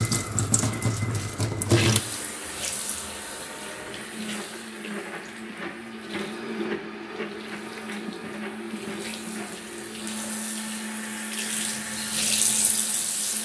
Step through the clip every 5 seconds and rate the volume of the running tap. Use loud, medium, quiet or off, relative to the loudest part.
loud, quiet, loud.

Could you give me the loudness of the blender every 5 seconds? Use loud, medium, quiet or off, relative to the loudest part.
medium, loud, loud.